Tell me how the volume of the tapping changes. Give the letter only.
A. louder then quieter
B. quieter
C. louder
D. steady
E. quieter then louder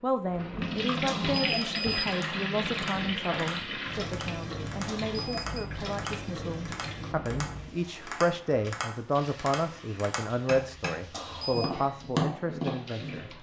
C.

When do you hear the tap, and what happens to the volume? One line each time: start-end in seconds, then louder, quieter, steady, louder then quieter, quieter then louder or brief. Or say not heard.
0.0-13.3 quieter.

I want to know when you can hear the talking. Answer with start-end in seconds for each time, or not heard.
0.0-13.3.